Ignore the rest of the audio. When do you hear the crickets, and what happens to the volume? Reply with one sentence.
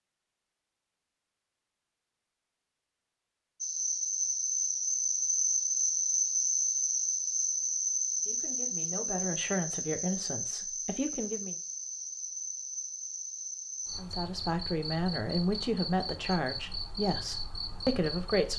The crickets can be heard from 3.6 to 18.5 s, getting quieter.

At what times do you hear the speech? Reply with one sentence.
You can hear the speech from 8.2 to 11.6 s and from 13.9 to 18.5 s.